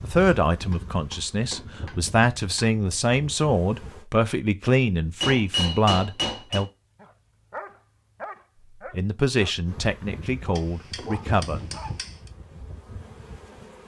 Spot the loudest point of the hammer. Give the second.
6 s.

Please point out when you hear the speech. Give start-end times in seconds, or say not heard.
0.0-6.7, 8.8-11.6.